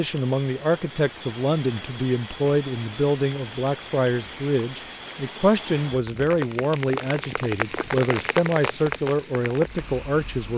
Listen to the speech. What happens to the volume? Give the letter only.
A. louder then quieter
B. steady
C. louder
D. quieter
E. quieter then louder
B.